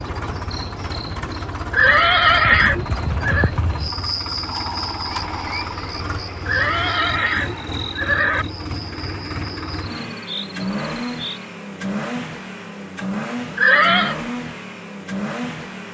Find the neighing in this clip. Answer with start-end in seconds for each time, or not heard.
1.7-3.5, 6.5-8.4, 13.6-14.2.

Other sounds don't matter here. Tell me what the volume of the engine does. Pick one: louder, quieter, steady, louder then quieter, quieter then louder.
steady.